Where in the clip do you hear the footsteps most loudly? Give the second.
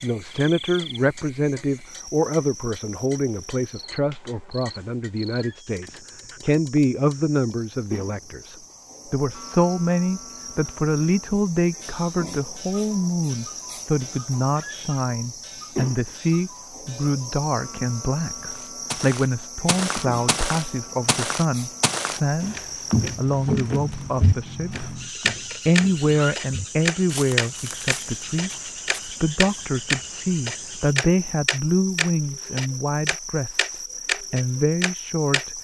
23 s.